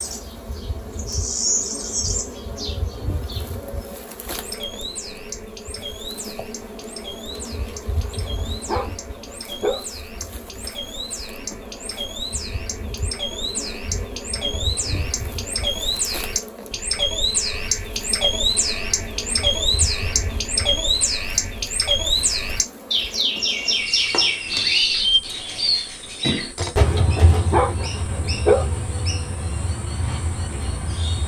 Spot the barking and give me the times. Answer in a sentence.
The barking can be heard from 8.0 to 9.8 s and from 26.9 to 28.7 s.